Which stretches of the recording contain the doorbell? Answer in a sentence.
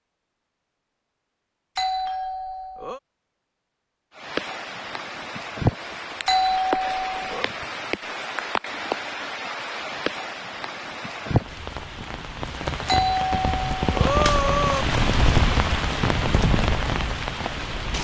You can hear the doorbell from 1.8 to 3.0 s, from 6.2 to 7.5 s and from 12.8 to 14.8 s.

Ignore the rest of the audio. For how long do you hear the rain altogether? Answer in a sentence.
The rain can be heard for 14 seconds in total.